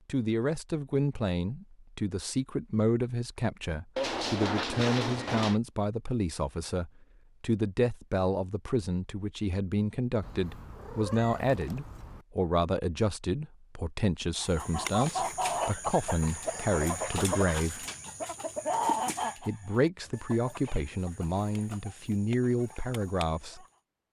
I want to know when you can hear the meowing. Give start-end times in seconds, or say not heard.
4.0-5.6, 10.2-12.2, 20.0-20.9.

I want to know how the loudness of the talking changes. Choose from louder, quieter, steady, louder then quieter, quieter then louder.
steady.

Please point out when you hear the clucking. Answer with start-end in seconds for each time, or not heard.
14.3-23.8.